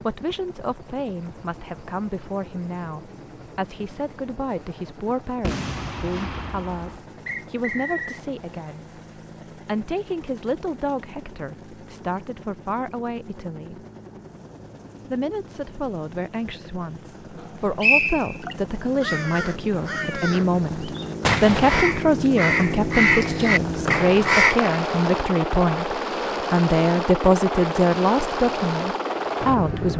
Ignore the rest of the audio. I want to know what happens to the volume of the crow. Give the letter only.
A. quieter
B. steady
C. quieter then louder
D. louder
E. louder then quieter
D.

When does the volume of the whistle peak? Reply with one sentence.
The loudest moment of the whistle is at 18 seconds.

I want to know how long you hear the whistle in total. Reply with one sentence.
You can hear the whistle for 3 seconds altogether.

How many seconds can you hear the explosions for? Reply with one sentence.
The explosions can be heard for 2 seconds in total.